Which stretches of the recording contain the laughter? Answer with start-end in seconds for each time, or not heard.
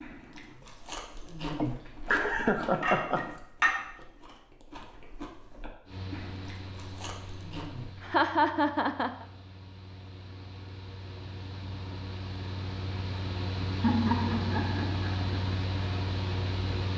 1.5-3.2, 8.0-9.2, 13.8-15.3.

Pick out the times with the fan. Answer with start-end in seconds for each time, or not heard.
5.8-16.9.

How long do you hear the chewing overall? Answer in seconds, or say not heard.
8 s.